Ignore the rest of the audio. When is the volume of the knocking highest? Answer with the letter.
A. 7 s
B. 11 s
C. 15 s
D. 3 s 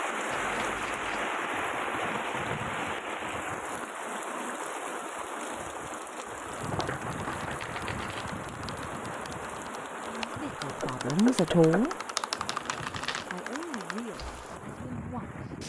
B.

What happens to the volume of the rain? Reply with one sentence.
The loudness of the rain goes down.